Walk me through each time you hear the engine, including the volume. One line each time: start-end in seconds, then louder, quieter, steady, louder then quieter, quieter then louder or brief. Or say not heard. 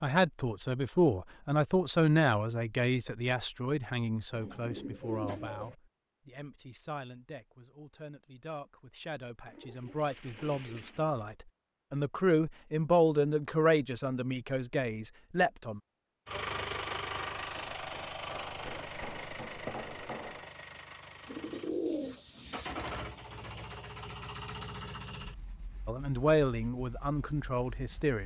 16.2-28.2 quieter.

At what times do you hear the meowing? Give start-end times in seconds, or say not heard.
not heard.